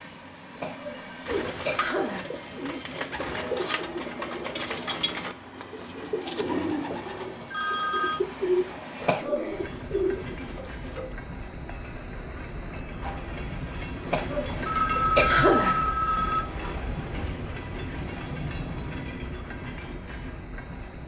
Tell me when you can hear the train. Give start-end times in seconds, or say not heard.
0.0-21.0.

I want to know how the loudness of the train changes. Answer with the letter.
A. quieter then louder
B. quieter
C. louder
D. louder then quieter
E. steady
C.